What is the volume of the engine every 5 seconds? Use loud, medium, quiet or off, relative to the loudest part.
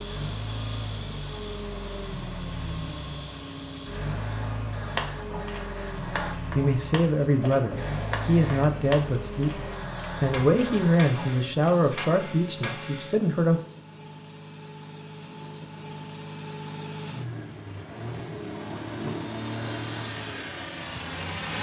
loud, loud, medium, loud, loud.